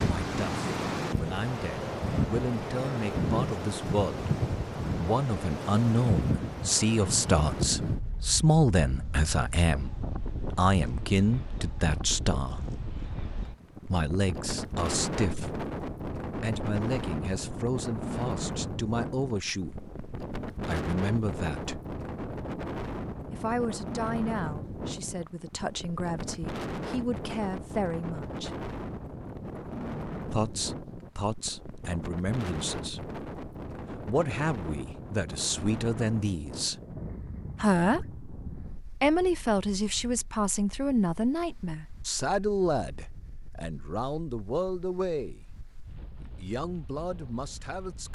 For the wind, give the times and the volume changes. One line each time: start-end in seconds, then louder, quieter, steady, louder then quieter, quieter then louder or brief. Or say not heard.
0.0-48.1 quieter.